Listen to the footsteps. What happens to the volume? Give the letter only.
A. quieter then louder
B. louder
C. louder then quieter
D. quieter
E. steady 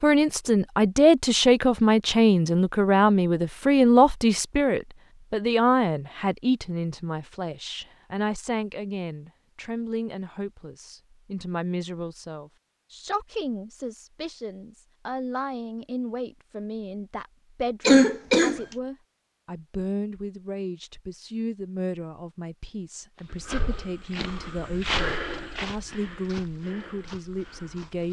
C.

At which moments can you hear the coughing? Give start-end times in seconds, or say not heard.
17.9-18.6.